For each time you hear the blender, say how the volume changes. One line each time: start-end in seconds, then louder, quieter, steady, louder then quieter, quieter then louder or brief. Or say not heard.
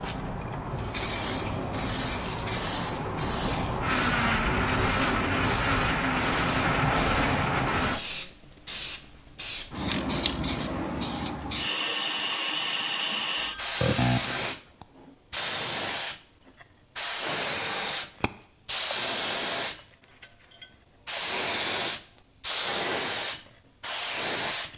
3.8-8.0 steady.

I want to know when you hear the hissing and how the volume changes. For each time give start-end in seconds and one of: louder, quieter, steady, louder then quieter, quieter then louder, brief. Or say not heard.
0.0-24.7 steady.